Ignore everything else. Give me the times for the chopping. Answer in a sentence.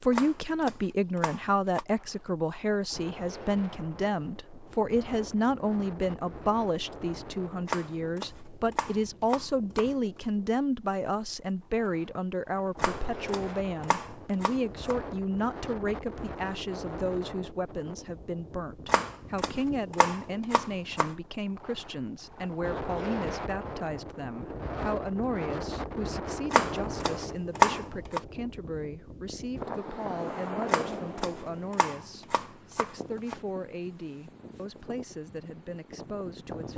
You can hear the chopping from 0.1 to 1.9 s, from 7.7 to 9.9 s, from 12.8 to 14.9 s, from 18.9 to 21.1 s, from 26.5 to 28.2 s and from 30.6 to 33.4 s.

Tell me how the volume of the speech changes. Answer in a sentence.
The volume of the speech goes down.